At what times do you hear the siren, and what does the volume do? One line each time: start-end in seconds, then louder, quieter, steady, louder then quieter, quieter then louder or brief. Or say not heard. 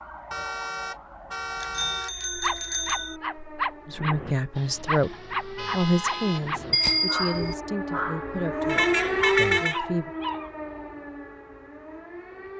0.0-12.5 louder then quieter.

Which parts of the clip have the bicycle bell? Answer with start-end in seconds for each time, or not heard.
1.6-3.1, 6.7-7.5.